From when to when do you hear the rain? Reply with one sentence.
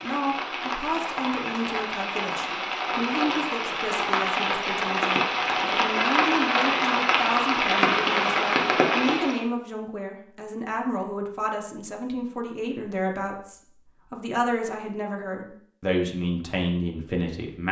The rain can be heard from 0.0 to 9.4 s.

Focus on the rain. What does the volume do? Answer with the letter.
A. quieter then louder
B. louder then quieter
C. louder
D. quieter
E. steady
C.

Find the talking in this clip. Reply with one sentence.
The talking can be heard from 0.0 to 17.6 s.